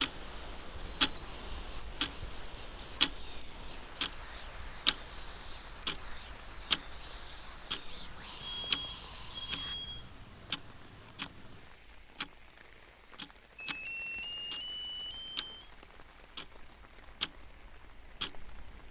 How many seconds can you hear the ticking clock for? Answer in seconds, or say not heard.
19 s.